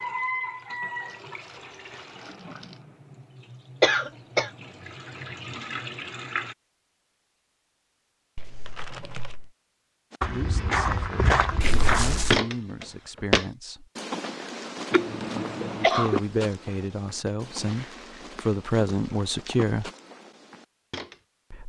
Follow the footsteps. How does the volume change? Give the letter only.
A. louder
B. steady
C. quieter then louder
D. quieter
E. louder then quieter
D.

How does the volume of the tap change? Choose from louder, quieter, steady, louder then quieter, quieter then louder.
quieter then louder.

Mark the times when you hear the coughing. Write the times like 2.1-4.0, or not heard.
3.8-4.5, 11.6-12.4, 14.9-16.2.